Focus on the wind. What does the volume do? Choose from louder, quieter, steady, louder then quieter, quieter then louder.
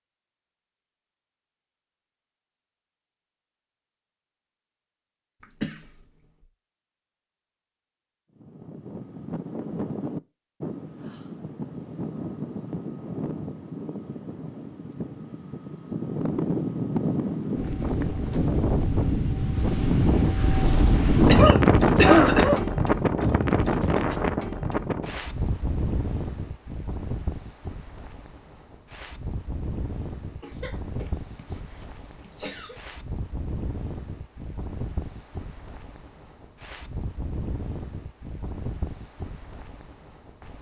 louder then quieter.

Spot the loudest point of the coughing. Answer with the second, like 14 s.
22 s.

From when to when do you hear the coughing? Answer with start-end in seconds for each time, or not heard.
5.4-6.0, 21.2-22.6, 30.4-32.8.